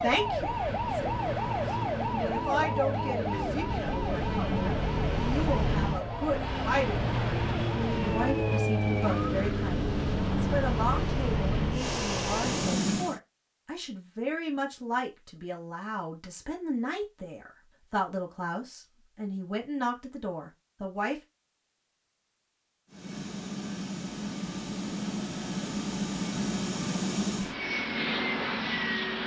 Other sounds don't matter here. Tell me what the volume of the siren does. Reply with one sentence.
The volume of the siren goes down.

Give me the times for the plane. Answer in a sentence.
The plane can be heard from 0.0 to 13.2 s and from 22.9 to 29.2 s.